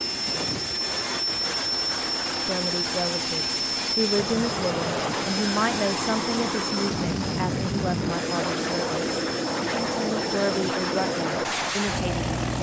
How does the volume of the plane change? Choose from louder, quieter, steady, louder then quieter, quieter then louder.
steady.